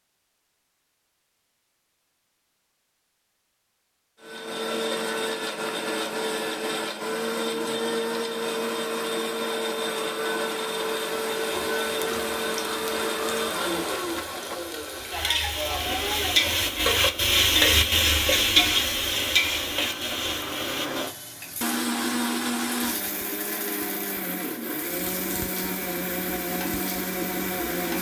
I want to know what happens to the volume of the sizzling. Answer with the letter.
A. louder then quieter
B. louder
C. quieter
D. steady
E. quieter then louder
A.